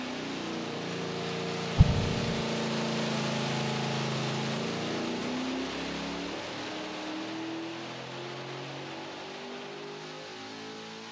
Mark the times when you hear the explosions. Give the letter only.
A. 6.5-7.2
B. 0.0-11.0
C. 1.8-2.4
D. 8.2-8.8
C.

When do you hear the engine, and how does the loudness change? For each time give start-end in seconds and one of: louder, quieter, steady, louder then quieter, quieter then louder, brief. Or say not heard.
0.0-11.0 quieter.